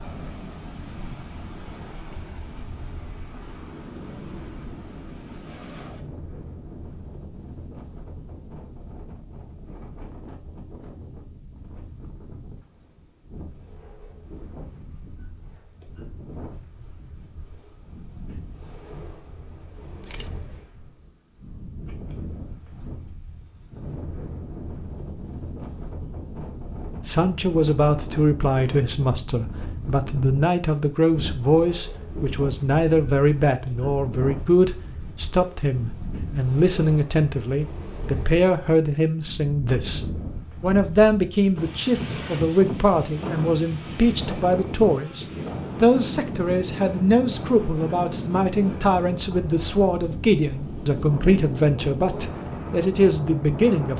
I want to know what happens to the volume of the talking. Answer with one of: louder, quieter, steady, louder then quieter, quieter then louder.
steady.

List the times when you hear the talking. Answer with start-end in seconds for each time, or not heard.
27.1-53.9.